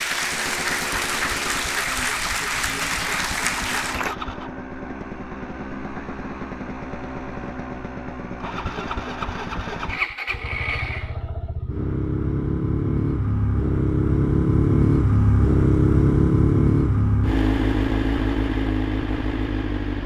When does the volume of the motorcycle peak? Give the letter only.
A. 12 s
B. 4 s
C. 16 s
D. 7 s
C.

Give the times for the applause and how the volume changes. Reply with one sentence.
The applause can be heard from 0.0 to 4.2 s, at a steady volume.